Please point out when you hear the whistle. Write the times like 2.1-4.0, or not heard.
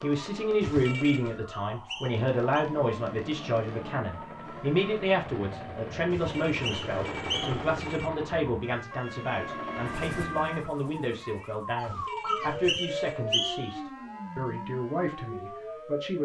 1.5-2.6, 6.5-7.7, 12.2-13.8.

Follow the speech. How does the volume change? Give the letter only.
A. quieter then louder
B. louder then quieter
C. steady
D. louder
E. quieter
E.